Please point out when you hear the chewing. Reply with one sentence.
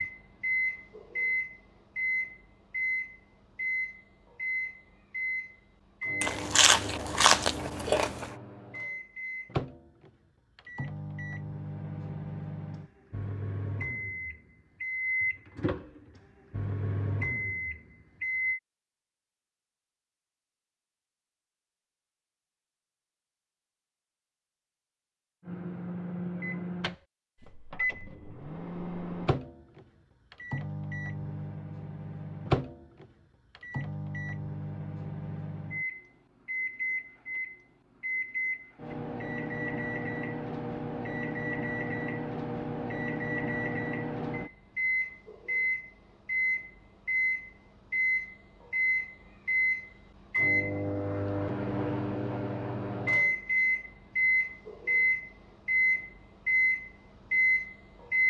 The chewing can be heard from 6.2 to 8.3 s.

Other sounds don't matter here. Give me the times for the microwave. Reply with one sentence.
The microwave can be heard from 0.0 to 18.6 s and from 25.4 to 58.2 s.